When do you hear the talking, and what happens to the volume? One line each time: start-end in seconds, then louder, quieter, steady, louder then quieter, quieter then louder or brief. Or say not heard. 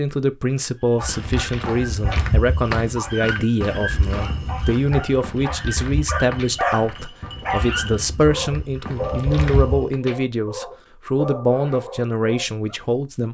0.0-13.3 steady.